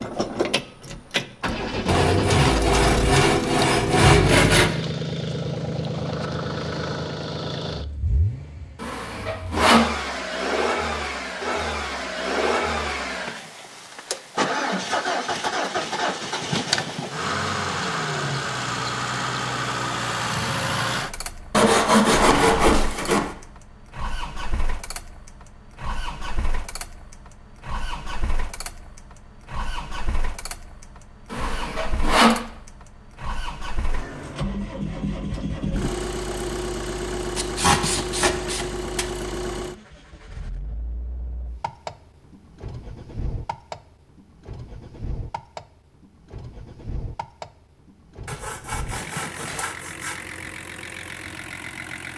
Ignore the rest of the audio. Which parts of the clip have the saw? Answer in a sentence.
You can hear the saw from 1.9 to 4.8 s, from 8.8 to 9.9 s, from 21.5 to 23.4 s, from 31.3 to 32.5 s, from 37.4 to 39.0 s and from 48.2 to 50.2 s.